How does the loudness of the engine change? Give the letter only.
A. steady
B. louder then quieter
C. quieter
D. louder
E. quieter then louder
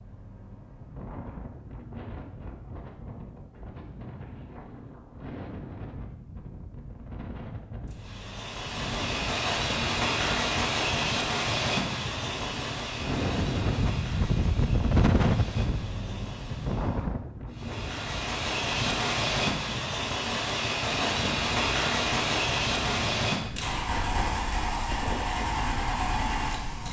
E.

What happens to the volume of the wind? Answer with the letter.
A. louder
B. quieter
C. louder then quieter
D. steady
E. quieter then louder
C.